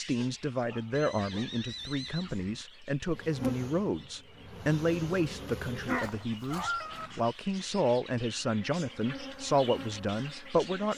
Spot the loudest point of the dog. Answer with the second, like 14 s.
7 s.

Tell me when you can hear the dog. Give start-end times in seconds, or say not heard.
0.1-1.6, 5.8-7.1.